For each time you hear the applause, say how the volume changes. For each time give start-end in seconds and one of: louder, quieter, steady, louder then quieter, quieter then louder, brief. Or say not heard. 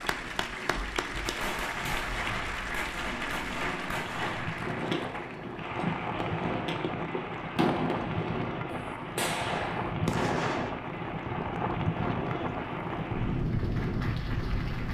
0.0-14.8 quieter.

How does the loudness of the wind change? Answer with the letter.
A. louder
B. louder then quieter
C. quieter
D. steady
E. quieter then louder
A.